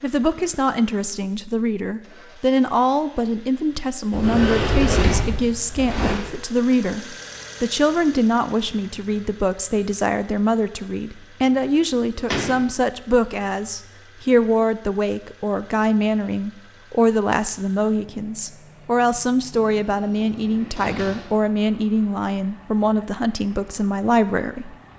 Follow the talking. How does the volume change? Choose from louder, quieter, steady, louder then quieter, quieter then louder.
steady.